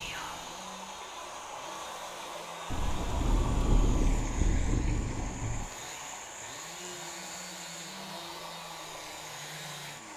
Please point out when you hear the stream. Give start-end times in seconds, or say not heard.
0.0-10.1.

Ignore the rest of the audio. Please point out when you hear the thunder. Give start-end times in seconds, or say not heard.
2.7-5.7.